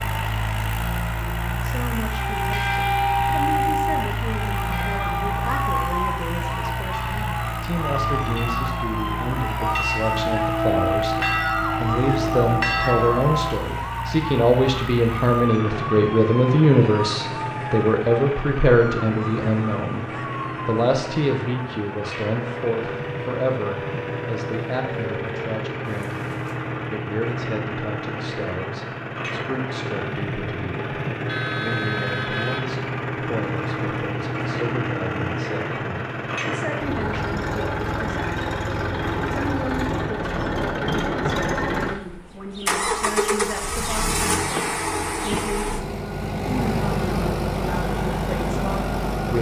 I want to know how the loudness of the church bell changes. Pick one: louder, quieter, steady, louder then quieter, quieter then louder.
quieter then louder.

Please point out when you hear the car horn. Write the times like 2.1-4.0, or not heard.
31.2-32.8.